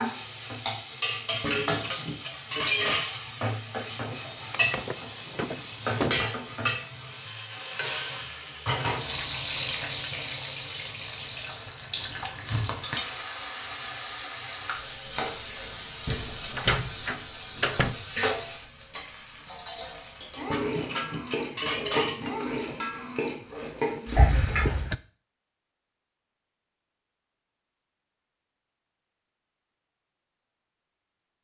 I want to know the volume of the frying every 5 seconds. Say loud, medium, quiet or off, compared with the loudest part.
loud, loud, loud, loud, loud, off, off.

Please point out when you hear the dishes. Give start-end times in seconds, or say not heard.
1.4-3.1, 20.5-22.3.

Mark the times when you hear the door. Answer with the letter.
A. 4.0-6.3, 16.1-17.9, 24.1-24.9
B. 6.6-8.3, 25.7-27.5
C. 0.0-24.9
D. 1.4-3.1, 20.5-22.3
A.